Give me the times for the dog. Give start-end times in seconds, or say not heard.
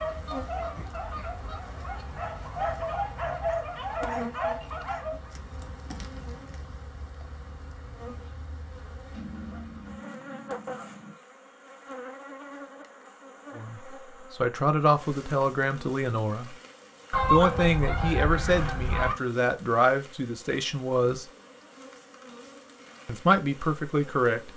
0.0-5.3.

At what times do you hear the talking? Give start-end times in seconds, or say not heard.
13.6-16.6, 17.3-21.2, 23.1-24.5.